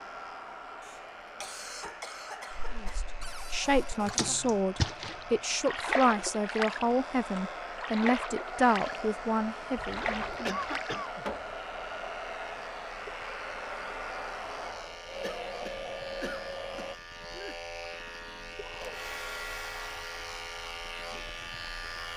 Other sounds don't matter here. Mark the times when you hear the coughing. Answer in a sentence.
The coughing can be heard from 0.8 to 3.0 s, from 10.4 to 11.2 s and from 15.2 to 17.6 s.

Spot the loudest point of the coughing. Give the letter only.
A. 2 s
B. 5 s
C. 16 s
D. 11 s
D.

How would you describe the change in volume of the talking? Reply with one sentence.
The loudness of the talking stays about the same.